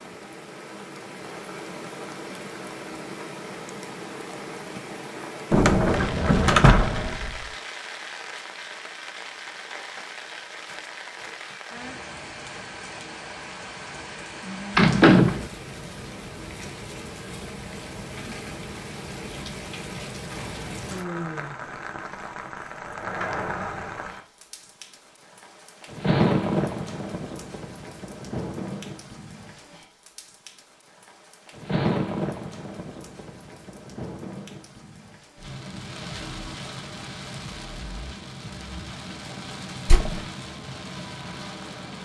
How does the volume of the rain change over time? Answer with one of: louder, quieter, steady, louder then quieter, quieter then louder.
louder then quieter.